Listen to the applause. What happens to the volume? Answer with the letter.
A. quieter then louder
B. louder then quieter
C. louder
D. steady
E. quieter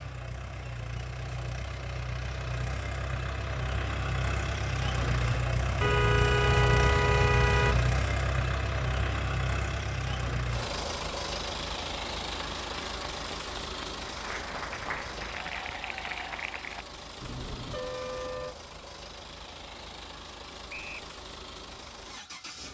C.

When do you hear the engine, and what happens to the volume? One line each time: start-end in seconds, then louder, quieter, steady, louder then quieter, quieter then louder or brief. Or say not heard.
0.0-22.6 louder then quieter.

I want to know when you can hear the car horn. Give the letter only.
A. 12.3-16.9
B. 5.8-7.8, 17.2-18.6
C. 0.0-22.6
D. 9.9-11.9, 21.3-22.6
B.